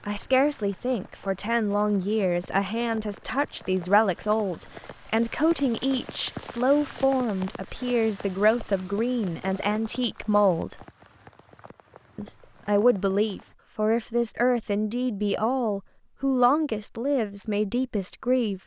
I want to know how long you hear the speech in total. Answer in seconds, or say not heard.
17 s.